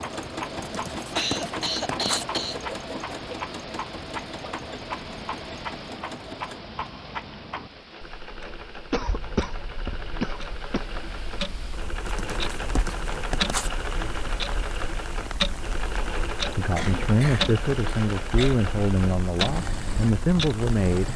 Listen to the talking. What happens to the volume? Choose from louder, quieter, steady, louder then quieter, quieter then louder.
quieter then louder.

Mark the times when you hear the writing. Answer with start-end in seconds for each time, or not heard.
0.6-2.2, 12.1-13.7.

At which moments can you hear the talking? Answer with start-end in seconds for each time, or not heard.
16.6-21.1.